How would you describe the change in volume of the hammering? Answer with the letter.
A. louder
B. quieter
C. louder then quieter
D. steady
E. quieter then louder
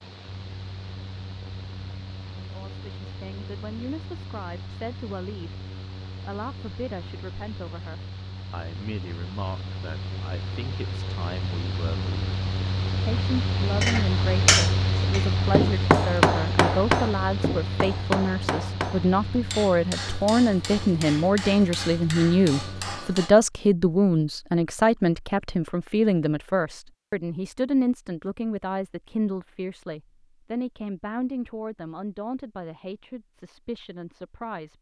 B.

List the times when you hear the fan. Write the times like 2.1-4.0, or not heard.
0.0-23.0.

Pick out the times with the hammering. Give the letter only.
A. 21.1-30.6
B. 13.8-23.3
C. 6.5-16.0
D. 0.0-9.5
B.